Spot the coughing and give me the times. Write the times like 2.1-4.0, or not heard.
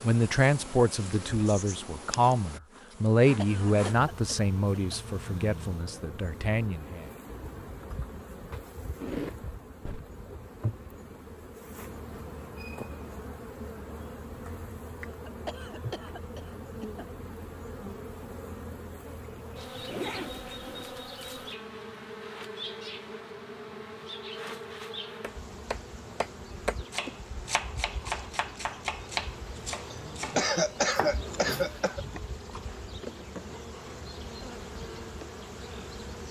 3.2-5.0, 15.2-17.1, 29.9-32.0.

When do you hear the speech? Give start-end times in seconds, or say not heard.
0.0-7.0.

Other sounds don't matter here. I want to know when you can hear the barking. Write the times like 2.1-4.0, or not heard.
not heard.